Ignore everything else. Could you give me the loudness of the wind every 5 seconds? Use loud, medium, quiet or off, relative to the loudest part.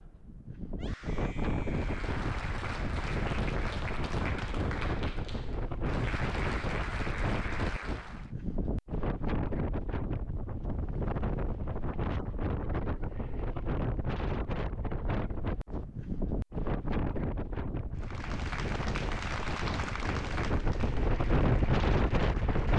medium, medium, medium, medium, loud.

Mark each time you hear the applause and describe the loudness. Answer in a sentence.
You can hear the applause from 1.6 to 8.3 s, at a steady volume; and from 17.9 to 22.7 s, getting quieter.